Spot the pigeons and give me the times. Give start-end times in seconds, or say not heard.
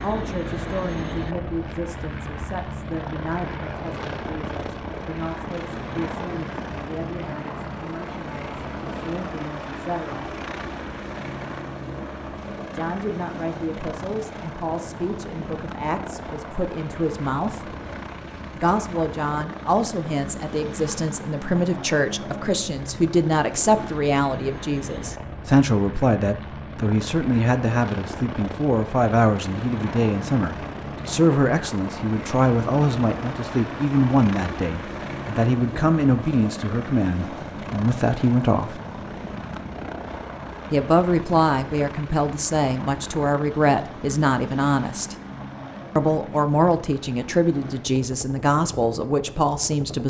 not heard.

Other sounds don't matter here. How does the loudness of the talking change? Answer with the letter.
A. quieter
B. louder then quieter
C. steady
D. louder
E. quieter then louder
D.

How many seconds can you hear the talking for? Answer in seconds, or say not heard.
44 s.